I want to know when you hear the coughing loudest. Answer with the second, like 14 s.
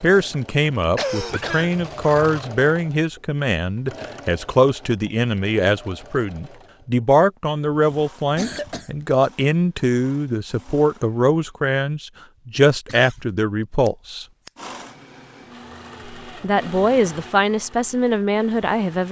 1 s.